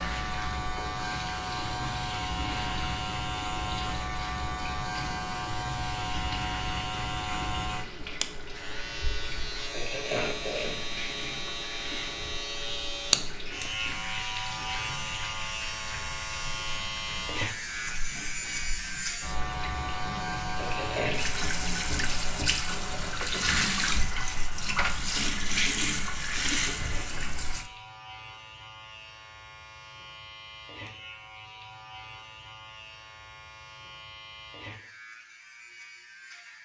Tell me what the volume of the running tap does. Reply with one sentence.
The volume of the running tap goes up.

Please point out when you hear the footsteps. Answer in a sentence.
You can't hear the footsteps here.